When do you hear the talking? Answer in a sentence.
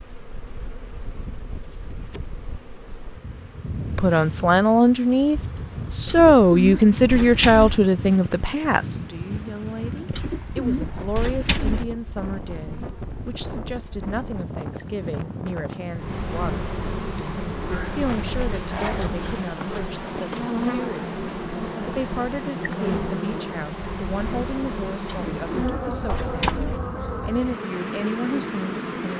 The talking can be heard from 4.0 to 29.1 s.